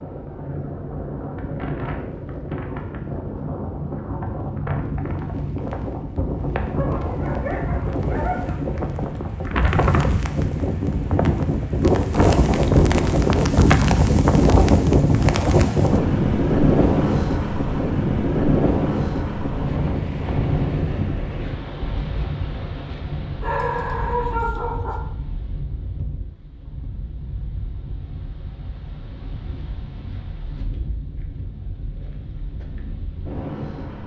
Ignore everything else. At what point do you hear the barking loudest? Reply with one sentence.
The loudest moment of the barking is at 24 seconds.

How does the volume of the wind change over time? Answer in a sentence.
The volume of the wind goes up, then down.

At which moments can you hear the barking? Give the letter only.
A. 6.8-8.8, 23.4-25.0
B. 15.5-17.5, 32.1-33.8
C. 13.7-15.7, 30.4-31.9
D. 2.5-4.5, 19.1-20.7
A.